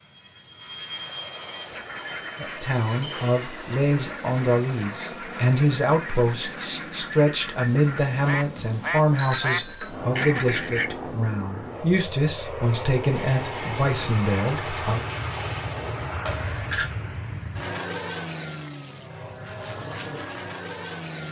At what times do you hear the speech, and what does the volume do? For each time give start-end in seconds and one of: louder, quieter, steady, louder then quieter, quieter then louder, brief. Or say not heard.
2.4-15.0 steady.